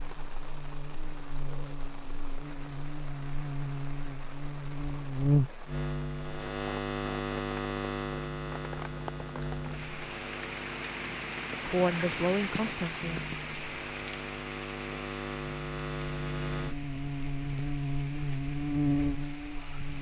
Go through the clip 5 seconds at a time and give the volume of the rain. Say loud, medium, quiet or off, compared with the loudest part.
medium, medium, loud, medium.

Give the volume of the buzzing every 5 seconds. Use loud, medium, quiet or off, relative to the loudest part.
medium, loud, medium, loud.